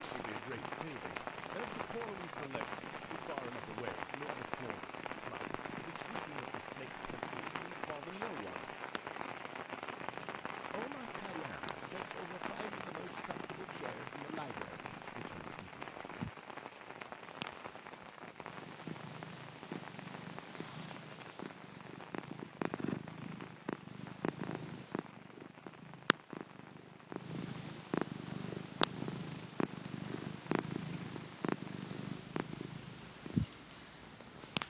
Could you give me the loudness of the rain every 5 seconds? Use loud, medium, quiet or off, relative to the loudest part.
loud, loud, loud, medium, medium, quiet, quiet.